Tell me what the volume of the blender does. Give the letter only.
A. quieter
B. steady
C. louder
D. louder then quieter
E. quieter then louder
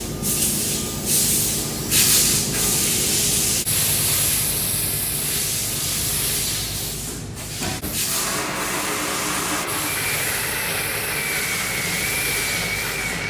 B.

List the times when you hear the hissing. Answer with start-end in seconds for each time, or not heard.
0.0-13.2.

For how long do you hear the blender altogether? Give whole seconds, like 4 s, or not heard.
5 s.